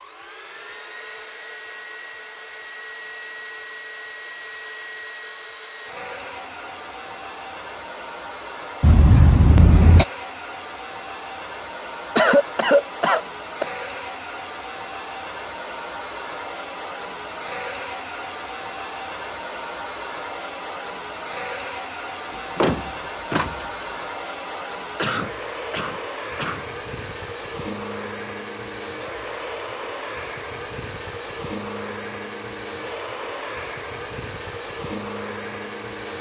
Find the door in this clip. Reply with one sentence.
You can hear the door from 22.3 to 23.9 s.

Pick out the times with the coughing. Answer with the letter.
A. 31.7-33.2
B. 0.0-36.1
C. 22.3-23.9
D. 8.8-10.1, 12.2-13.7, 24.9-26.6
D.